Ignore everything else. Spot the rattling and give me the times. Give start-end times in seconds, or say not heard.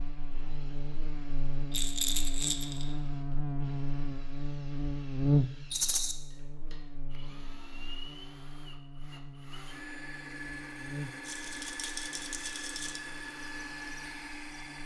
1.7-2.9, 5.7-6.2, 11.2-13.0.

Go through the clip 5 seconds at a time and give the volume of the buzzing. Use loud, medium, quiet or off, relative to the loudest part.
loud, loud, quiet.